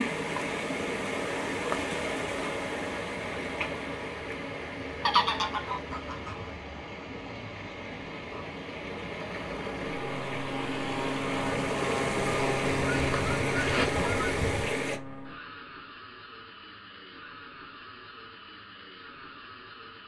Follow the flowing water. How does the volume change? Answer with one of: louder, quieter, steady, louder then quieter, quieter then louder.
quieter then louder.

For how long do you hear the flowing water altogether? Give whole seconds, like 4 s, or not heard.
15 s.